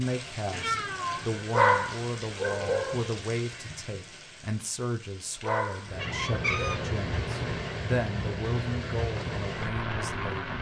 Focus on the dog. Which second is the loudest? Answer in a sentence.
The volume of the dog peaks at 2 seconds.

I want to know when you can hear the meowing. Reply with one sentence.
You can hear the meowing from 0.5 to 1.4 s and from 6.0 to 7.6 s.